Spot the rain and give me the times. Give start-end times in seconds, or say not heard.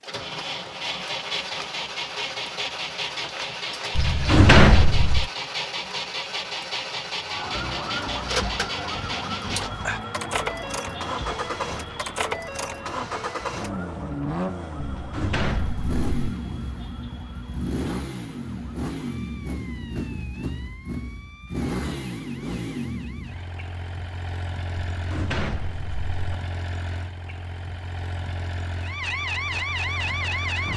not heard.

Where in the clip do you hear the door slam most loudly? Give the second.
5 s.